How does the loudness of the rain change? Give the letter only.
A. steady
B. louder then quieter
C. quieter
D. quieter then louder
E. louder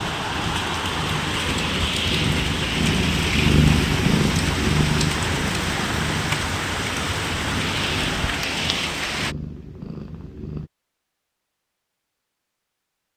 A.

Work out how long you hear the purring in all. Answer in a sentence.
The purring can be heard for 11 seconds in total.